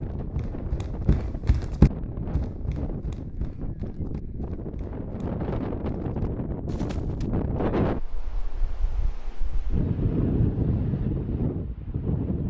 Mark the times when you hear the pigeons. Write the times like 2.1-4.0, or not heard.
not heard.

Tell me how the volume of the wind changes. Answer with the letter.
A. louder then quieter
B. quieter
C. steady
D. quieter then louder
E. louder
E.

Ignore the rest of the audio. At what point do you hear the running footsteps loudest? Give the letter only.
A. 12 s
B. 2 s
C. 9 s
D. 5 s
B.